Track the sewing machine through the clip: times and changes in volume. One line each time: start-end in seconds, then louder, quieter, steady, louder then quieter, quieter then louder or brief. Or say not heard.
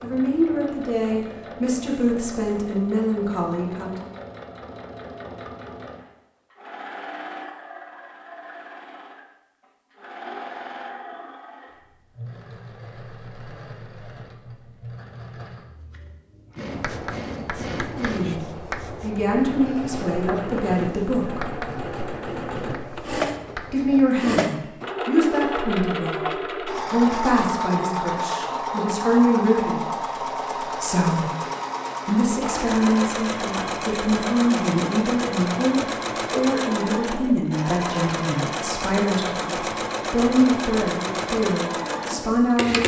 0.0-42.8 louder.